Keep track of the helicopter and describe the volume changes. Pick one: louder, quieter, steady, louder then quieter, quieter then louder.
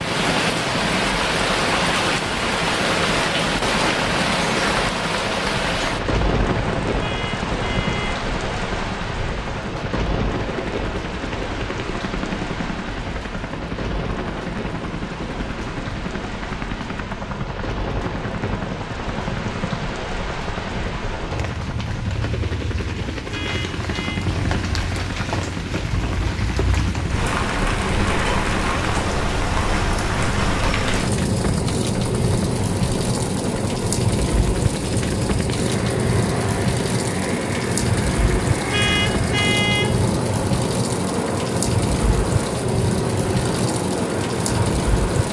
steady.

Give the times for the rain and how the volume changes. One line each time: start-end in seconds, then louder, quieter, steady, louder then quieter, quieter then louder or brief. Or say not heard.
0.0-45.2 quieter then louder.